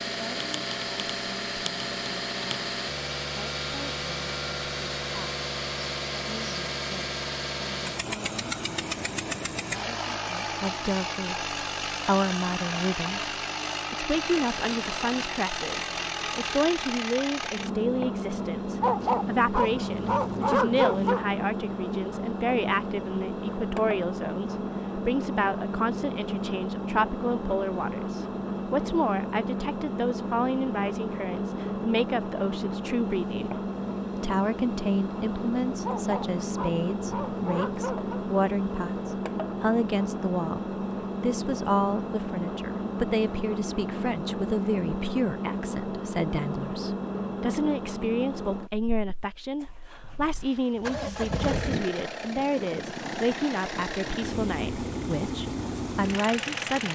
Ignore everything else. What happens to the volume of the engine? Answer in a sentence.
The volume of the engine stays about the same.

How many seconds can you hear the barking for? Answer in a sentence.
The barking can be heard for 5 seconds in total.